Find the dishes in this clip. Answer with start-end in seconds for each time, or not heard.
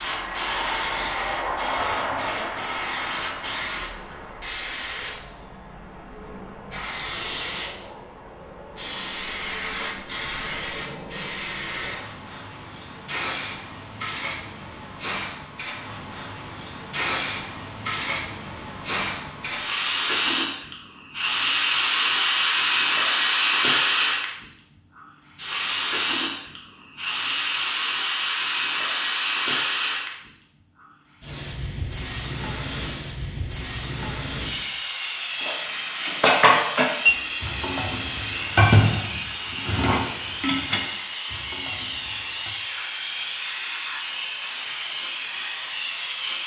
35.4-42.5.